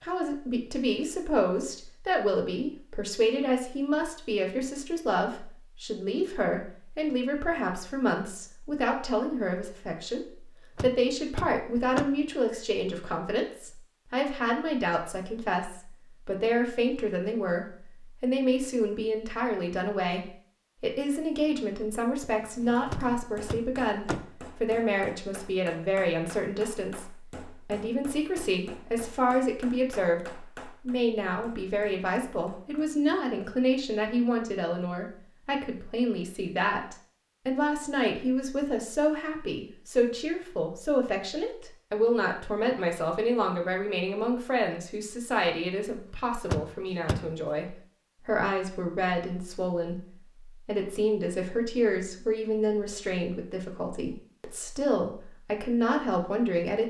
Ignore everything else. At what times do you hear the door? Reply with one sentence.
You can hear the door from 10.8 to 12.1 s, from 22.9 to 24.2 s and from 46.5 to 47.2 s.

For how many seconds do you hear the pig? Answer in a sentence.
The pig can't be heard in this clip.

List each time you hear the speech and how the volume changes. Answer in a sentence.
You can hear the speech from 0.0 to 56.8 s, at a steady volume.